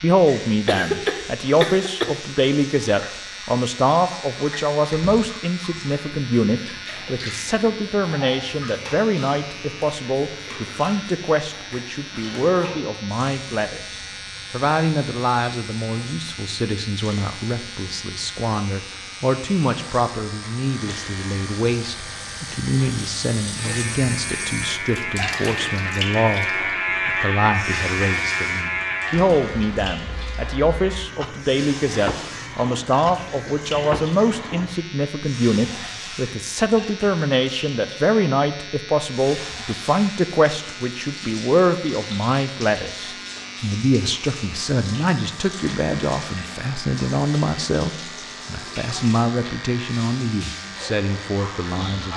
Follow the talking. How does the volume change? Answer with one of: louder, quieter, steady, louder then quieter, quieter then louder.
steady.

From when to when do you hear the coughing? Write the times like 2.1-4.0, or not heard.
0.7-2.1.